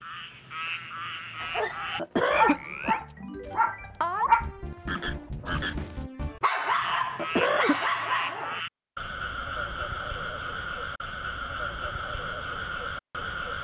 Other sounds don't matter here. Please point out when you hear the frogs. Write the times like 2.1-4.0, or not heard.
0.0-13.5.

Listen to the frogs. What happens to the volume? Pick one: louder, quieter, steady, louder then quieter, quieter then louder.
steady.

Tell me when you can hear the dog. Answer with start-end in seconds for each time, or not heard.
1.4-8.6.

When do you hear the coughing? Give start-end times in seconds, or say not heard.
1.9-3.0, 7.2-7.8.